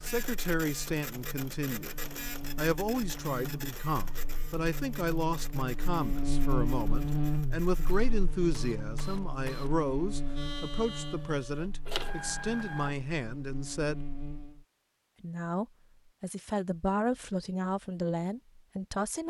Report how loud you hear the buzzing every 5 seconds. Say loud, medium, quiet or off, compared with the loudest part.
medium, loud, medium, off.